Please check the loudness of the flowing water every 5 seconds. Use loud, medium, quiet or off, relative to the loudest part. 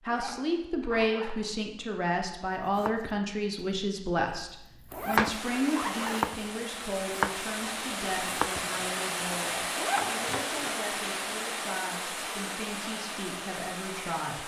off, loud, loud.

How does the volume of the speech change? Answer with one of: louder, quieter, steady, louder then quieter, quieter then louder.
quieter.